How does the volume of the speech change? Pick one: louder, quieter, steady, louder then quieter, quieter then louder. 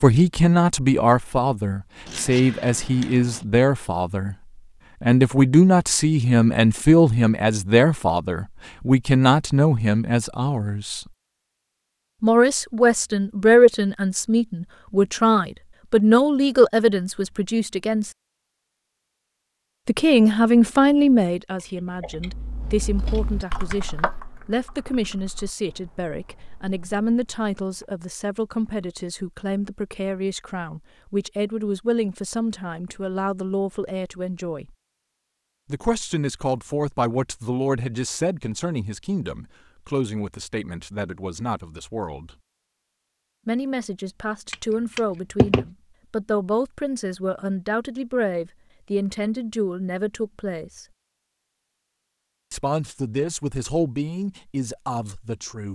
quieter.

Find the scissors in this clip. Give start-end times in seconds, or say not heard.
2.0-3.5, 22.9-24.2, 44.5-45.6.